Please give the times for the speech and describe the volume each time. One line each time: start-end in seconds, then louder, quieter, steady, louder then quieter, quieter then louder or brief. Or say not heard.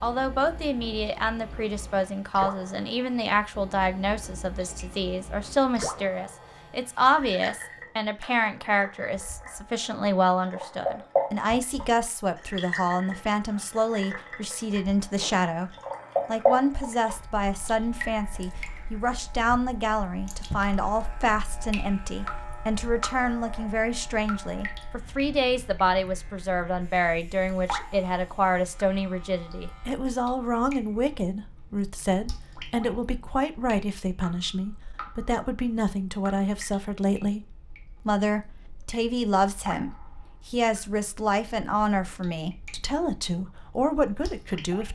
0.0-44.8 steady.